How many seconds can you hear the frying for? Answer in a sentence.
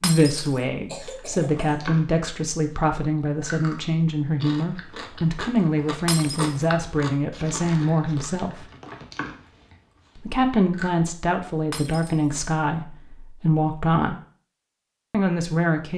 The frying can't be heard in this clip.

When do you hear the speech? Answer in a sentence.
The speech can be heard from 0.0 to 8.7 s, from 10.2 to 14.2 s and from 15.1 to 15.9 s.